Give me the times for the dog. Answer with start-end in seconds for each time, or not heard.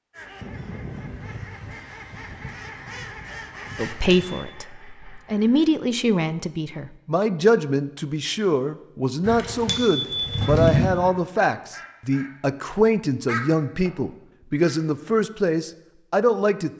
not heard.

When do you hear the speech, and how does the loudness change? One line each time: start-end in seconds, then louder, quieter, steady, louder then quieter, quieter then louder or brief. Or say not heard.
3.8-16.7 steady.